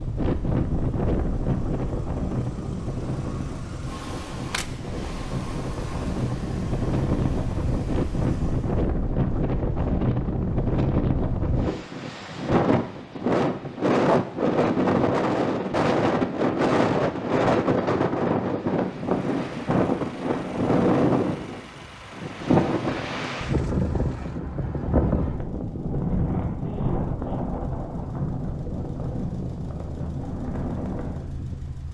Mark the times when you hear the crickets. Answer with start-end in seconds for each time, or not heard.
not heard.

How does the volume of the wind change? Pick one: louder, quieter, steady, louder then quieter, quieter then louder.
louder then quieter.